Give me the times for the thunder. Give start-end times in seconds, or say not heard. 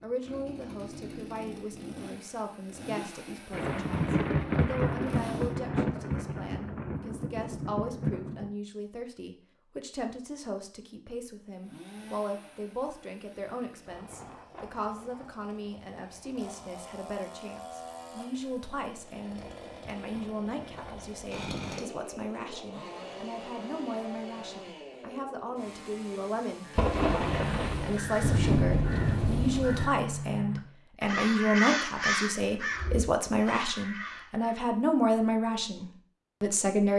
3.5-8.5, 26.8-29.9.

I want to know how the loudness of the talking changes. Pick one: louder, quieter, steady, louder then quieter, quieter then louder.
louder.